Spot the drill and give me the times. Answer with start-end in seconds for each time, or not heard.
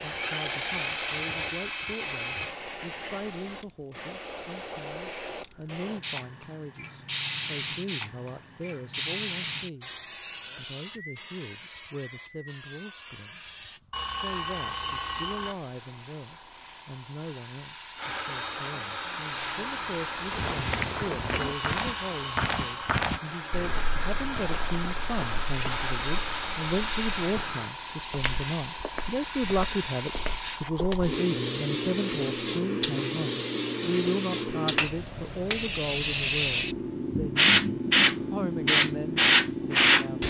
0.0-2.5, 17.9-27.8.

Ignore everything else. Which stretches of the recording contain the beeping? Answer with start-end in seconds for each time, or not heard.
13.9-15.6, 21.3-22.9.